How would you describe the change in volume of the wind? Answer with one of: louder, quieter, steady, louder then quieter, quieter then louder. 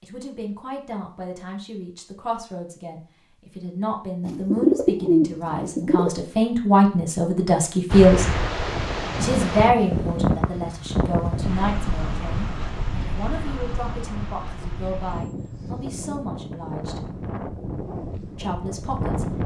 quieter.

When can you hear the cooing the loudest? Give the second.
5 s.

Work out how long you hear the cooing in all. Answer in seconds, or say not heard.
2 s.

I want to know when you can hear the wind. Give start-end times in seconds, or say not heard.
7.9-19.4.